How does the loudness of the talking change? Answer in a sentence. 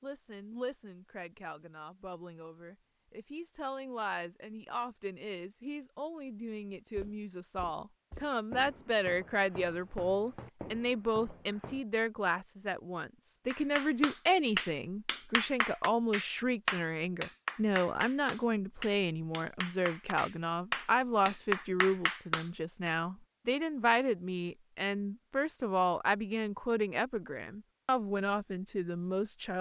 The volume of the talking goes up.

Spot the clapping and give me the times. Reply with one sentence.
You can hear the clapping from 13.5 to 22.9 s.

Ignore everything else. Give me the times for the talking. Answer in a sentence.
You can hear the talking from 0.0 to 29.5 s.